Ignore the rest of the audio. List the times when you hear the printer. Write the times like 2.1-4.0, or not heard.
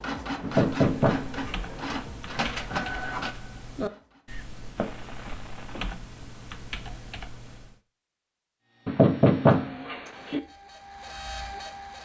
0.0-4.5, 8.7-12.0.